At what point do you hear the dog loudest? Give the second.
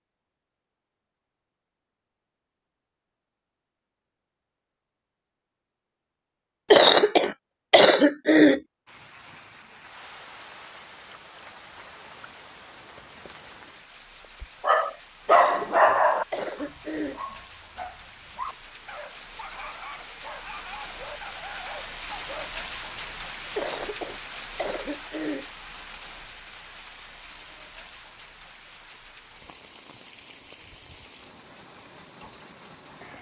16 s.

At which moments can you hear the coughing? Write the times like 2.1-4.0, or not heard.
6.7-8.6, 15.2-17.2, 23.6-25.4.